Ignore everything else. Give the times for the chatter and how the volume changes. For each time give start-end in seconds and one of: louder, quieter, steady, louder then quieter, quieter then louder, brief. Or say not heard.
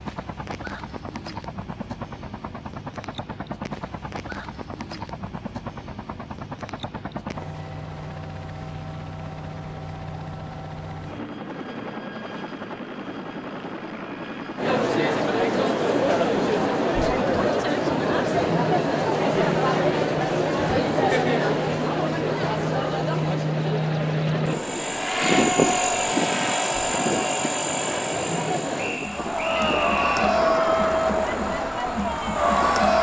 14.6-32.9 quieter then louder.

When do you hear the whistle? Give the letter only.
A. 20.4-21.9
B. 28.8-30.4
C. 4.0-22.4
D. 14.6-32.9
B.